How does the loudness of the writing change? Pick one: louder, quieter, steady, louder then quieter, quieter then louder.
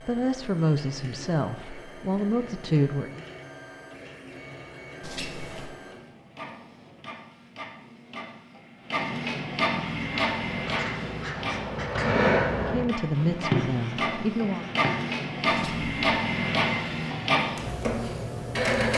louder then quieter.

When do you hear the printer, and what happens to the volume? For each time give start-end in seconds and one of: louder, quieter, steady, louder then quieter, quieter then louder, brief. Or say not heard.
0.0-18.9 louder.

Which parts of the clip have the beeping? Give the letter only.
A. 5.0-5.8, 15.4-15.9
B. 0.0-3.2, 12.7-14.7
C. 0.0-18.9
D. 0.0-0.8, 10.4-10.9
A.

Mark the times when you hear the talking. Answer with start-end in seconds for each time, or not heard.
0.0-3.2, 12.7-14.7.